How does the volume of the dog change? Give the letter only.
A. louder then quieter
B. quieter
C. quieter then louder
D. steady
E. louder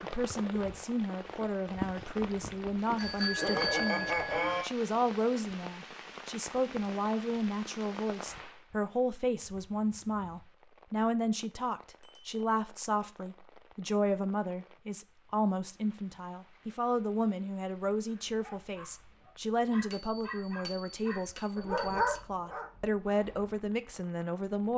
E.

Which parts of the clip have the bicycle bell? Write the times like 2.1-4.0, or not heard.
3.0-4.7, 12.0-12.4, 19.9-22.2.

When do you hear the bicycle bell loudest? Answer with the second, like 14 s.
4 s.